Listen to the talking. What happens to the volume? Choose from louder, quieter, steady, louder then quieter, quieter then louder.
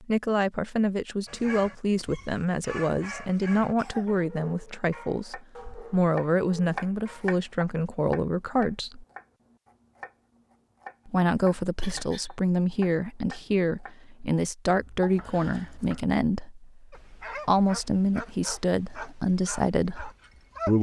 steady.